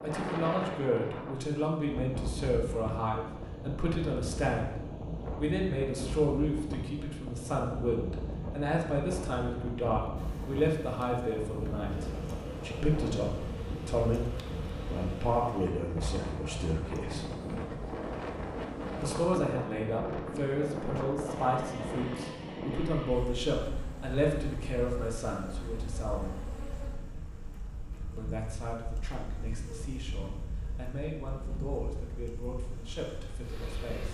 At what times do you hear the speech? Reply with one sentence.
The speech can be heard from 0.0 to 14.3 s, from 14.9 to 17.2 s, from 18.9 to 26.4 s and from 28.1 to 34.1 s.